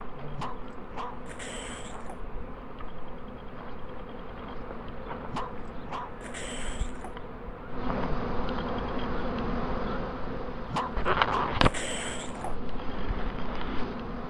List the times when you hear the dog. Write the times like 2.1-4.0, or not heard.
0.3-2.2, 5.2-7.2, 10.7-12.6.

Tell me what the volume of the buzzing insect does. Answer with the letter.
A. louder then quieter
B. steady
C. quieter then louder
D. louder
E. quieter
D.